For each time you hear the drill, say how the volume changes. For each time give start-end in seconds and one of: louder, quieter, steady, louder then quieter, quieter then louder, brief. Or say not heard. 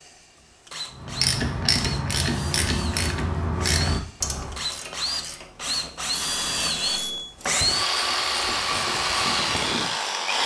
0.0-10.4 louder.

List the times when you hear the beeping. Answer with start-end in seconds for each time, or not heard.
6.1-7.3.